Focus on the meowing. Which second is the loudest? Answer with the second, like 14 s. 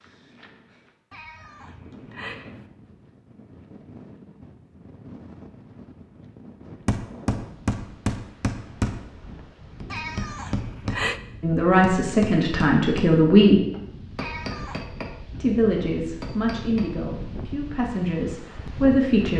11 s.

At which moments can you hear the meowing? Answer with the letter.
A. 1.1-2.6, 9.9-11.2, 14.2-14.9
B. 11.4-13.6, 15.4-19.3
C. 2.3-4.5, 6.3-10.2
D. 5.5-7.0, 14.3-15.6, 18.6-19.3
A.